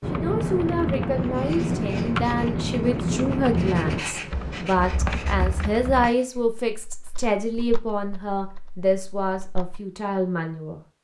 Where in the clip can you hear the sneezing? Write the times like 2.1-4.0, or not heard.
not heard.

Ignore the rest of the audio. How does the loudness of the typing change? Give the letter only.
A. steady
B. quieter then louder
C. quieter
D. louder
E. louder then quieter
C.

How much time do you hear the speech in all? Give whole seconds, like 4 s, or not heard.
11 s.